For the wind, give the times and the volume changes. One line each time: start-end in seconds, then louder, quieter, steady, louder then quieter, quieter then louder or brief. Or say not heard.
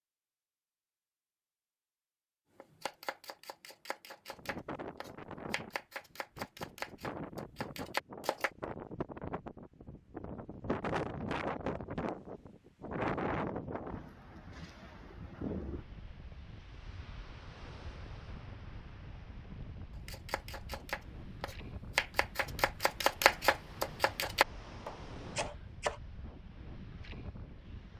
4.3-27.9 louder then quieter.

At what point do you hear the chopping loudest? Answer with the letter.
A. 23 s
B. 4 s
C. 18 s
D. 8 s
A.